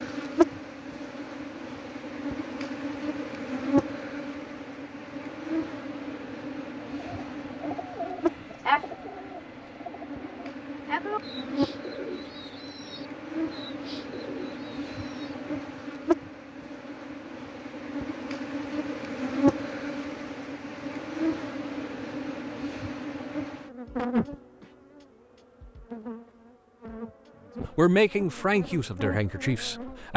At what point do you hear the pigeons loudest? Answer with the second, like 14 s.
9 s.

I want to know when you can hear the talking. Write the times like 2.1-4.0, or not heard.
27.8-30.1.